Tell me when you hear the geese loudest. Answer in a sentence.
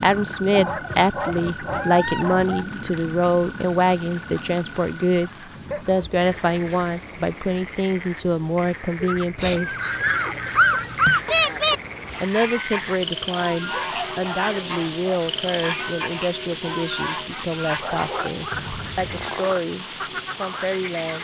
The loudest moment of the geese is at 12 seconds.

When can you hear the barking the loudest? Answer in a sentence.
The loudest moment of the barking is at 11 seconds.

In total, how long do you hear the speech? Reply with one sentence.
The speech can be heard for 19 seconds in total.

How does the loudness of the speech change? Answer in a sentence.
The volume of the speech goes down.